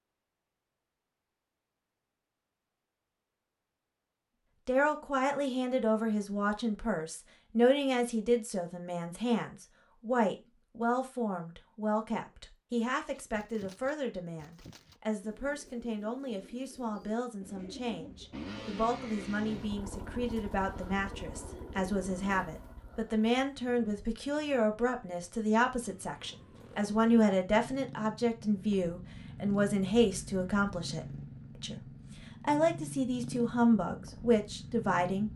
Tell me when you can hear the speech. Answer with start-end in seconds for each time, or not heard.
4.7-35.3.